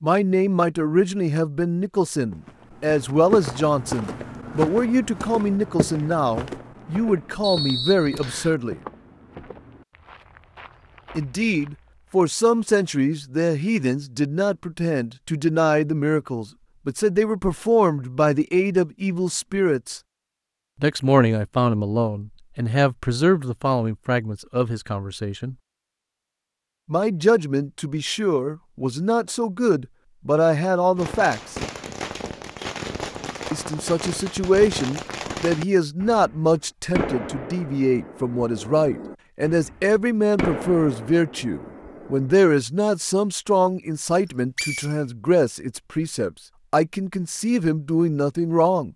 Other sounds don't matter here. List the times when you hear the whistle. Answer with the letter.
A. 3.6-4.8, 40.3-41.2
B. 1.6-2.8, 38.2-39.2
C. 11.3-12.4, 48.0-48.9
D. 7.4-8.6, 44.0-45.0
D.